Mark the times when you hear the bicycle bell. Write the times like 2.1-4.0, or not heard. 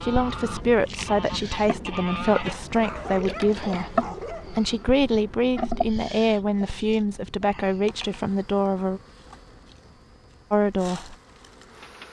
not heard.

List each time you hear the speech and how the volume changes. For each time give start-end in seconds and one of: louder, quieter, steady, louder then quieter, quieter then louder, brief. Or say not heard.
0.0-9.0 steady
10.5-11.2 brief.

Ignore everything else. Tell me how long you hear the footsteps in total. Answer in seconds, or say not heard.
not heard.